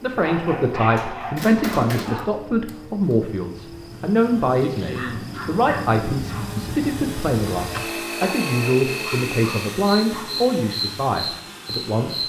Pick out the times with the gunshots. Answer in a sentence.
You can hear the gunshots from 1.4 to 3.1 s.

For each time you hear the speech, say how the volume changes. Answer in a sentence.
The speech can be heard from 0.0 to 12.2 s, at a steady volume.